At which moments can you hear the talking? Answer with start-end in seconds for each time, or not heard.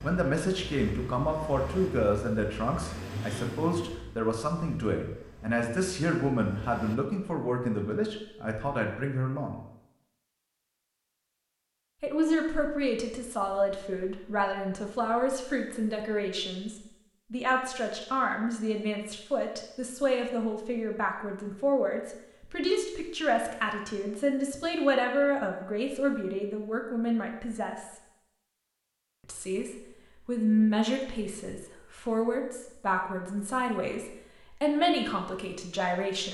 0.0-9.6, 12.0-27.9, 29.2-36.2.